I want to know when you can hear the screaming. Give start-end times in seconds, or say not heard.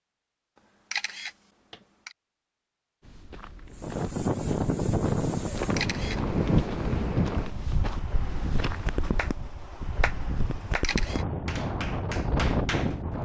not heard.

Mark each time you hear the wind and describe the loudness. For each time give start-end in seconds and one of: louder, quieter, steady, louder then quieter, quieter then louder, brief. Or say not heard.
3.8-13.2 quieter then louder.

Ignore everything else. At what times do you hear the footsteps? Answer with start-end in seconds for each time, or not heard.
3.0-9.1.